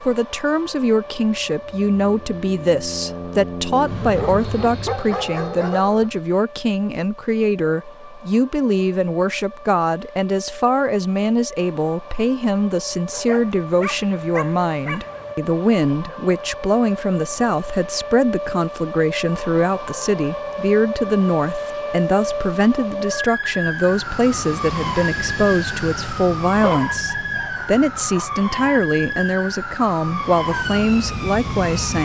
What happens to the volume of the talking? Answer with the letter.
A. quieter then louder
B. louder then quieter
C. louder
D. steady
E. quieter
D.